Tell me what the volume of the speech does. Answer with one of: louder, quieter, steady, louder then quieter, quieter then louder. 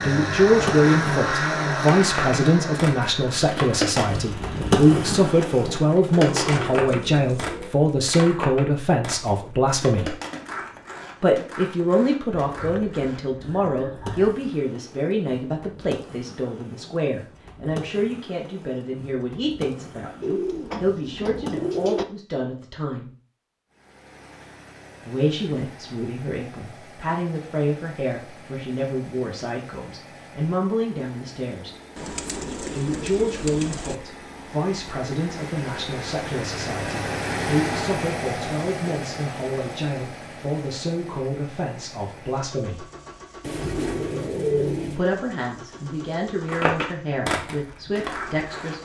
quieter.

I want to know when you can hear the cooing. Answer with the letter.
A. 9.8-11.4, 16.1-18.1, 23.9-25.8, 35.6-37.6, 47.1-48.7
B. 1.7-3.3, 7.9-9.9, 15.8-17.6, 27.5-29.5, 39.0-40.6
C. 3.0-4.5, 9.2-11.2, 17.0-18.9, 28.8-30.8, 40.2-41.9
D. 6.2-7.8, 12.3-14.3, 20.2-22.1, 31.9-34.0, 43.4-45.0
D.